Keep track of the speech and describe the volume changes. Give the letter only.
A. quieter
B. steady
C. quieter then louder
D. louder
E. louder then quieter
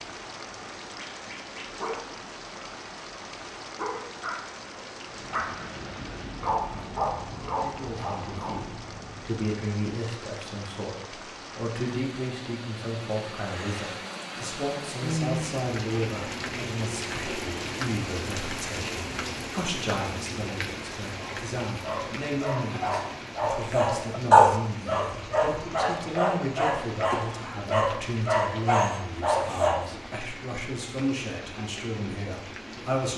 B.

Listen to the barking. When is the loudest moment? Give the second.
24 s.